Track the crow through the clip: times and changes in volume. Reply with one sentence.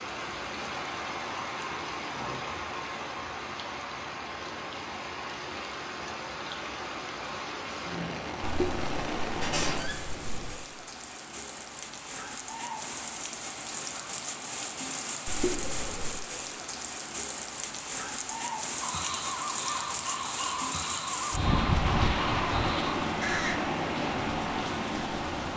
The crow can be heard from 18.8 to 23.6 s, at a steady volume.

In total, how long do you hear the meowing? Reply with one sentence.
You can hear the meowing for 3 seconds altogether.